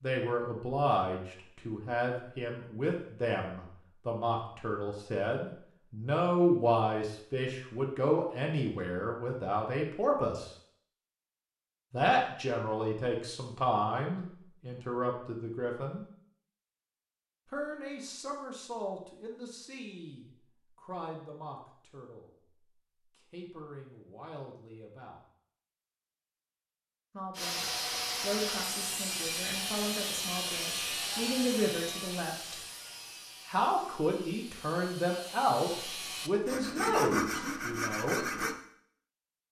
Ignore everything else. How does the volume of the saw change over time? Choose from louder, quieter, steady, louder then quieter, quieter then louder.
quieter then louder.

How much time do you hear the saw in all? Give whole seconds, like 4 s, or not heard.
11 s.